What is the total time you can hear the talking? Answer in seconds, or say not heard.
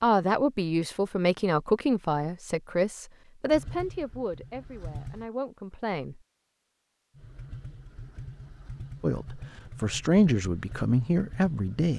9 s.